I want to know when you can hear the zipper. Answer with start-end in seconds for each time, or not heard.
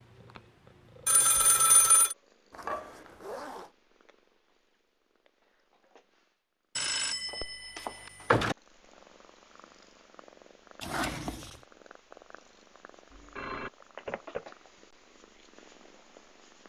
2.5-3.7, 10.8-11.6.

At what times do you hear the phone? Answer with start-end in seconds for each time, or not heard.
1.1-2.1, 6.8-8.6, 13.1-14.4.